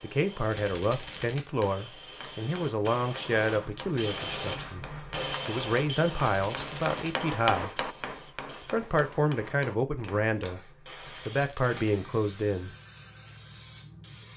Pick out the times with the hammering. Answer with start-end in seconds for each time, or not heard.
1.5-10.6.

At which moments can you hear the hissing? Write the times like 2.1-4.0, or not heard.
0.0-14.3.